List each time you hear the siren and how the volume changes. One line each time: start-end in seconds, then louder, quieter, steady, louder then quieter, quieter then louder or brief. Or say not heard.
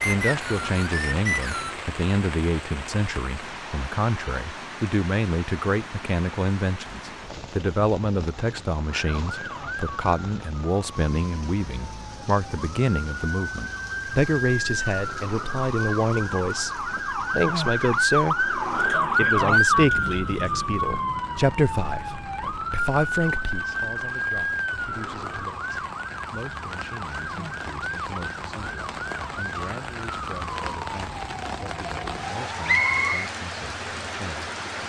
8.8-33.0 louder then quieter.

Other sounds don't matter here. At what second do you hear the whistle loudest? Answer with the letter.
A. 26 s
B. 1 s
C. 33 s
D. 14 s
C.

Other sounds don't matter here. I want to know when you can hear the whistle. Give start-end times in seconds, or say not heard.
0.0-1.8, 32.6-33.3.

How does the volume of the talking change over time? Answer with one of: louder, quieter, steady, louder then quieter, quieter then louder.
quieter.